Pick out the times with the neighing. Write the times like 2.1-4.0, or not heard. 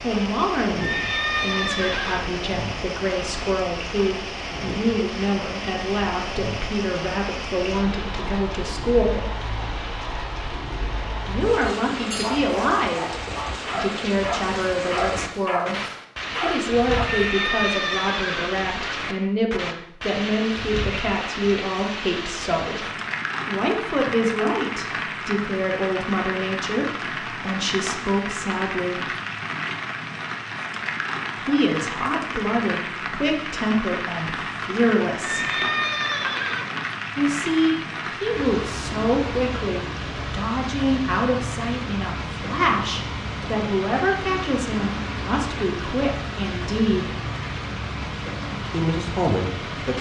0.8-2.3, 17.1-18.9, 35.2-36.8.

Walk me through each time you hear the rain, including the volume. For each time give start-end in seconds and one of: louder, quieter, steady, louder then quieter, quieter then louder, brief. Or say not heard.
0.0-49.9 steady.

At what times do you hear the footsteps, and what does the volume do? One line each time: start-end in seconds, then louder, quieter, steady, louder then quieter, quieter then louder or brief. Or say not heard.
not heard.